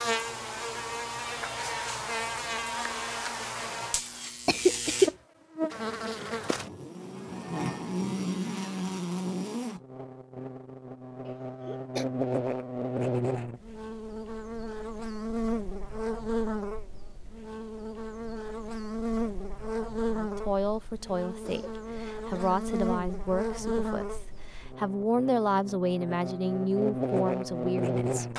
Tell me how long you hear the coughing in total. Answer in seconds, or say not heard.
3 s.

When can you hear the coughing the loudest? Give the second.
5 s.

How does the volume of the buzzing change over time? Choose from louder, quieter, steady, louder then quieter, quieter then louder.
steady.